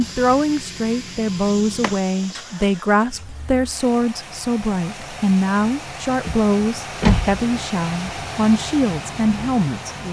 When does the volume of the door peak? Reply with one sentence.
The volume of the door peaks at 7 seconds.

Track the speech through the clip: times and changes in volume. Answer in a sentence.
You can hear the speech from 0.0 to 10.0 s, at a steady volume.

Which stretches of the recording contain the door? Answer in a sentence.
The door can be heard from 1.8 to 2.4 s and from 6.2 to 7.4 s.